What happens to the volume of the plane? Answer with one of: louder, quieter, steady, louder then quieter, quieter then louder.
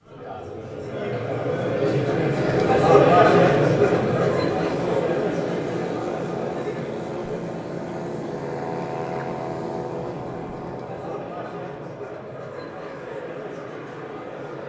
quieter.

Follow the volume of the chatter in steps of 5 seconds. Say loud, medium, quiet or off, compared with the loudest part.
loud, medium, quiet.